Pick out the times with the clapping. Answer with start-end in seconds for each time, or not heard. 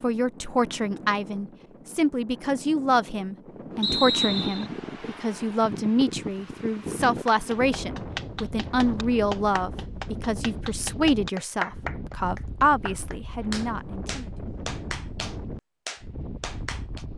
7.2-17.1.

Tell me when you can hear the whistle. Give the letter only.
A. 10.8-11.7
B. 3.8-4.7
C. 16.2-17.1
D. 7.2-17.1
B.